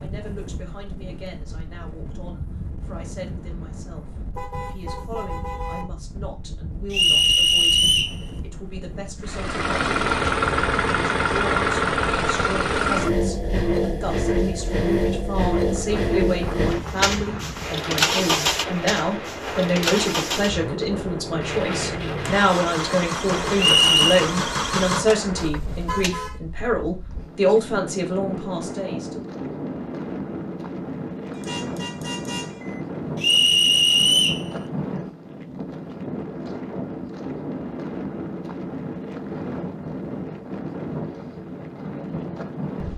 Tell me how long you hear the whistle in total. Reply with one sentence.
You can hear the whistle for 3 seconds altogether.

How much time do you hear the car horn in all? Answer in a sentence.
You can hear the car horn for 4 seconds altogether.